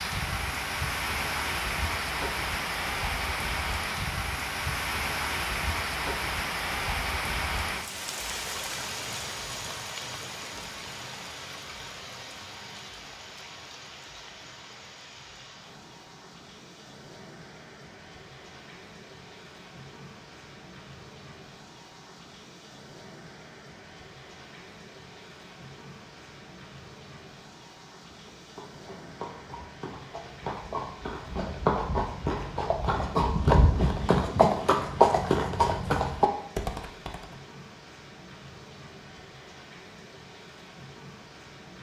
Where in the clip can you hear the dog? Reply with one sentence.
The dog can't be heard in this clip.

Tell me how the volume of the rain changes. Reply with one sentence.
The loudness of the rain goes down.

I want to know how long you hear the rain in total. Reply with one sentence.
The rain can be heard for 42 seconds in total.